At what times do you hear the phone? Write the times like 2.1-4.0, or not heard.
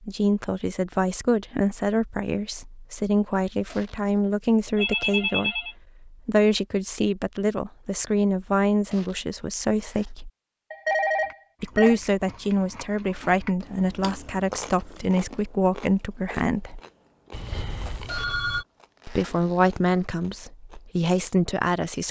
4.8-5.8, 10.7-12.0, 17.3-18.6.